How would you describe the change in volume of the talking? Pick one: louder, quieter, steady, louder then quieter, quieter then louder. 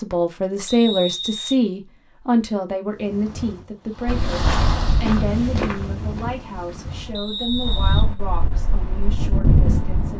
quieter.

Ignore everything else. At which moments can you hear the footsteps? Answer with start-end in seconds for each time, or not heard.
4.0-7.0.